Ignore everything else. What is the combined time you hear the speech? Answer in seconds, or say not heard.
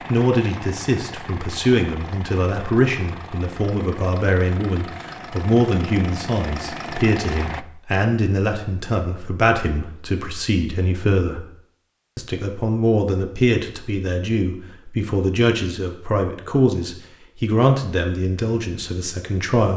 19 s.